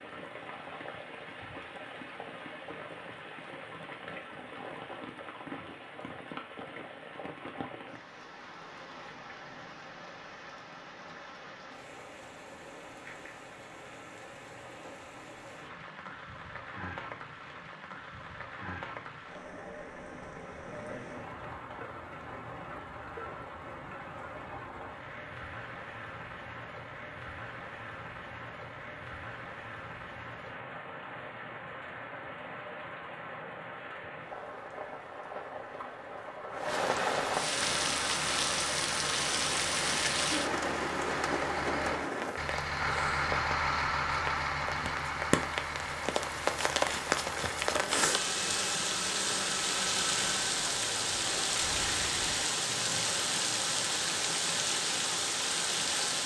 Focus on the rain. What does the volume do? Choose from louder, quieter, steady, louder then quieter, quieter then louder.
louder.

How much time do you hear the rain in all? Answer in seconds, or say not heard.
56 s.